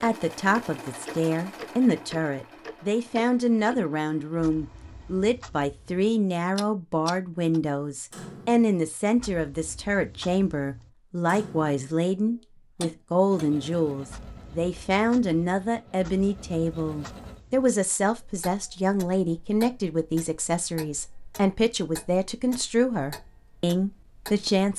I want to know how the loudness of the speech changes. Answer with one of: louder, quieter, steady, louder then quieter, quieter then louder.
steady.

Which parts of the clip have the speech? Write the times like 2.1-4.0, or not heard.
0.0-24.7.